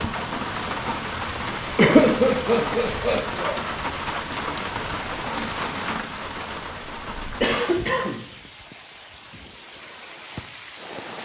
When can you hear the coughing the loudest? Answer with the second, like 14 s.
2 s.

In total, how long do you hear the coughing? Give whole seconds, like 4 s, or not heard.
3 s.